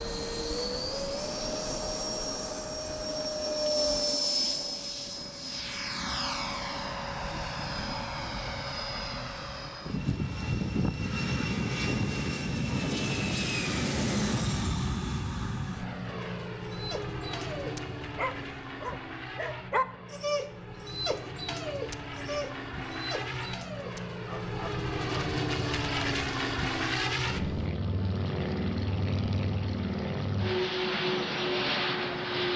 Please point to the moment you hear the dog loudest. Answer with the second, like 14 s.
20 s.